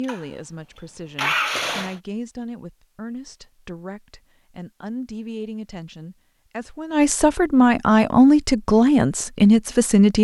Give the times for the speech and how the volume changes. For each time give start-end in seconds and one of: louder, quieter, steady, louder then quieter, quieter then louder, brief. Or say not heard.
0.0-10.1 louder.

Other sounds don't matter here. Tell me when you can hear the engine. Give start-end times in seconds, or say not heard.
0.0-1.9.